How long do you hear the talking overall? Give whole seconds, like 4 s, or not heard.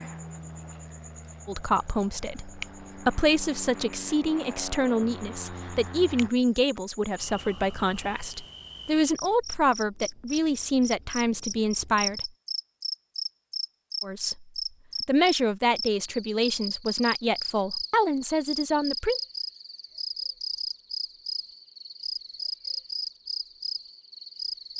16 s.